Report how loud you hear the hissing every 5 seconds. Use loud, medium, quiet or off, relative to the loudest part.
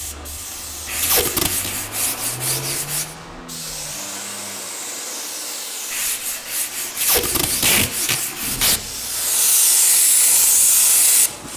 quiet, medium, loud.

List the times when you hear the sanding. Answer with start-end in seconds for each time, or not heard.
0.8-3.1, 5.9-8.8.